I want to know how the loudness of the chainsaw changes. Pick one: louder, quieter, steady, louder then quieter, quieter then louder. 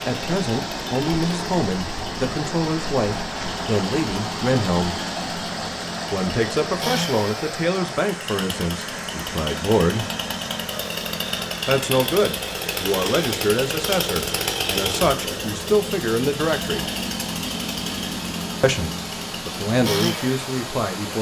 louder.